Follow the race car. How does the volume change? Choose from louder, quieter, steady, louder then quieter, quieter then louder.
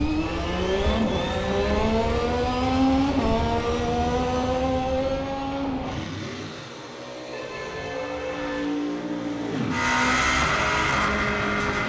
quieter then louder.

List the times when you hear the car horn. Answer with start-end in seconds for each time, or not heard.
0.2-2.0, 7.3-8.7.